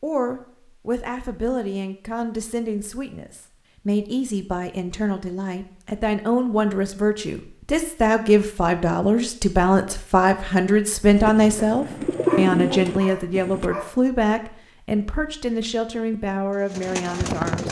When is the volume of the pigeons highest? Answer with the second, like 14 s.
12 s.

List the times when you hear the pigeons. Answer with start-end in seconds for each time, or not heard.
11.2-13.7, 16.1-17.6.